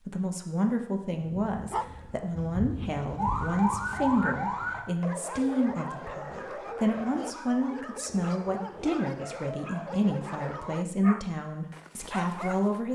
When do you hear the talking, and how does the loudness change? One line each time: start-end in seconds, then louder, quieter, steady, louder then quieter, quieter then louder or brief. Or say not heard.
0.0-12.9 steady.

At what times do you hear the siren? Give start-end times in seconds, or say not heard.
3.1-4.8.